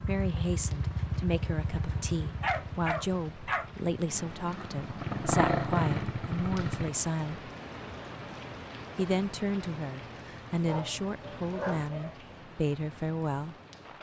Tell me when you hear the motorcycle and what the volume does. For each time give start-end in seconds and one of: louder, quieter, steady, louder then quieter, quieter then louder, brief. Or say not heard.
0.0-6.9 quieter then louder.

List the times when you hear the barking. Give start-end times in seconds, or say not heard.
2.4-3.7, 10.7-12.2.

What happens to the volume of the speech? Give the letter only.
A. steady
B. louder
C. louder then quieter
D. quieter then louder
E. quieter
A.